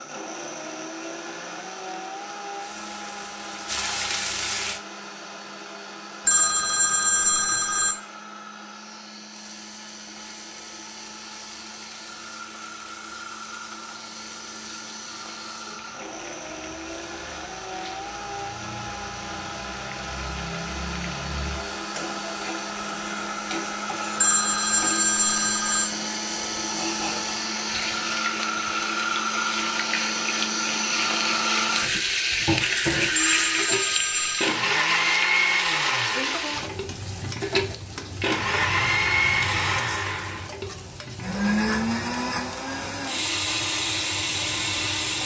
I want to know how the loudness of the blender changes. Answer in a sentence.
The loudness of the blender goes up.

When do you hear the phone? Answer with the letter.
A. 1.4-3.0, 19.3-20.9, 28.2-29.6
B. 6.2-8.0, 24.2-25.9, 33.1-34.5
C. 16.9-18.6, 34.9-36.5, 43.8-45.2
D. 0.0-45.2
B.